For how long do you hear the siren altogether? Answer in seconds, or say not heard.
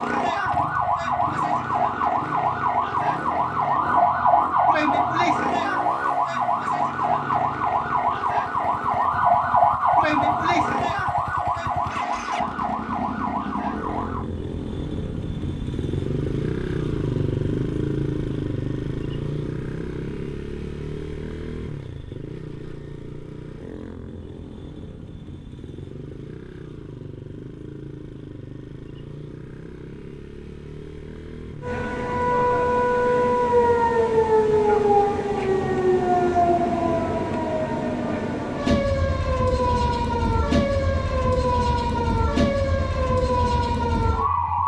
27 s.